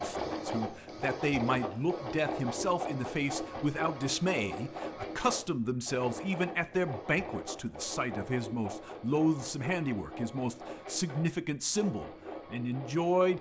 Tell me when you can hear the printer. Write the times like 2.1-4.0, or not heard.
0.0-13.3.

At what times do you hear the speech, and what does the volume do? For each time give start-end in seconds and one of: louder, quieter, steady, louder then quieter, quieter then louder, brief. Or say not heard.
0.0-13.3 steady.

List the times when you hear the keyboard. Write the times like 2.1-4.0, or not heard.
not heard.